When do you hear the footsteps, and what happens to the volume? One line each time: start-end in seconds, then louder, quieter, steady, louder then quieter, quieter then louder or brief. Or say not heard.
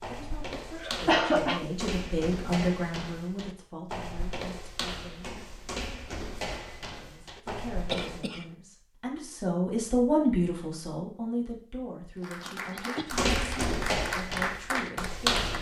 0.0-8.2 steady
13.1-15.5 brief.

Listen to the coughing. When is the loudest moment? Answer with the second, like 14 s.
1 s.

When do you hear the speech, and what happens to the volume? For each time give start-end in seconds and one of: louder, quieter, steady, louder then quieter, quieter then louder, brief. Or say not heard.
0.1-5.5 louder then quieter
7.0-15.5 louder then quieter.